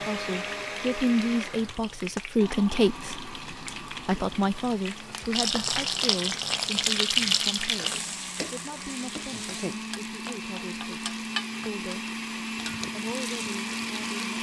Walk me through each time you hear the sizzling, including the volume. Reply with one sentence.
You can hear the sizzling from 0.0 to 14.3 s, getting louder then quieter.